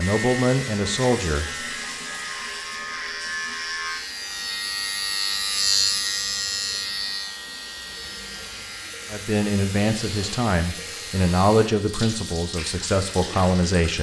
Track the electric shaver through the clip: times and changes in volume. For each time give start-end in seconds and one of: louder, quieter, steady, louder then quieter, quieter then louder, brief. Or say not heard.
0.0-13.7 louder then quieter.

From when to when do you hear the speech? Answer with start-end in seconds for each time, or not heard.
0.0-1.7, 9.1-13.9.